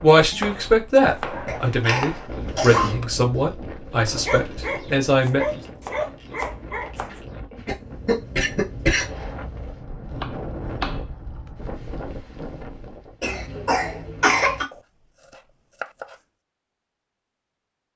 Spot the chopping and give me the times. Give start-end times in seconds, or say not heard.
0.3-2.3, 5.2-7.2, 10.1-11.1, 14.7-16.2.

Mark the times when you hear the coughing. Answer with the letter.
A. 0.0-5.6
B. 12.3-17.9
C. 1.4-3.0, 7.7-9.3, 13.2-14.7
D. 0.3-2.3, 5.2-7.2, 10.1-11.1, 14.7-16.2
C.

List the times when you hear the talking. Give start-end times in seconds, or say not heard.
0.0-5.6.